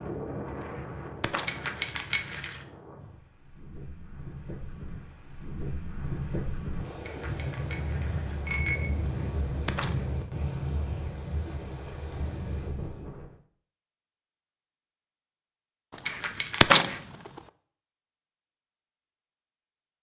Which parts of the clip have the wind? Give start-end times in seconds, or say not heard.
0.0-13.3.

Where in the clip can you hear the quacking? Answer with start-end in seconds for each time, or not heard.
0.7-1.6, 9.2-10.1, 16.1-17.0.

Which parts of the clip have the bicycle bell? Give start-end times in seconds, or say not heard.
1.4-2.6, 7.0-8.9, 16.1-17.0.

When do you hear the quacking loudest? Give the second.
17 s.